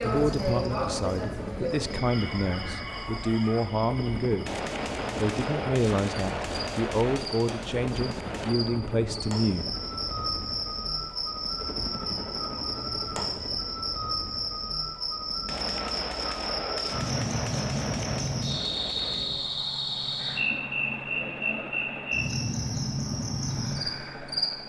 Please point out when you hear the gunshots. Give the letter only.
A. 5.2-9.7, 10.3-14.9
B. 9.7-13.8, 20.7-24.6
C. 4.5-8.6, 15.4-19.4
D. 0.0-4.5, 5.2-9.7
C.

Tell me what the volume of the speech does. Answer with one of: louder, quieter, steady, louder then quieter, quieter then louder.
steady.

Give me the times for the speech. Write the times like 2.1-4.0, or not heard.
0.0-4.5, 5.2-9.7.